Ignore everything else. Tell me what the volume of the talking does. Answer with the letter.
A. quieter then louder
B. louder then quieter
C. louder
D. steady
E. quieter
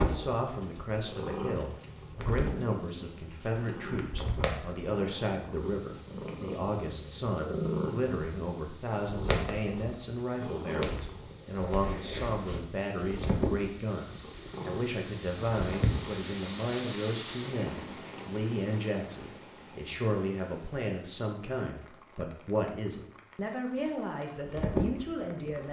D.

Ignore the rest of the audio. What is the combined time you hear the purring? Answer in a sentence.
You can hear the purring for 18 seconds altogether.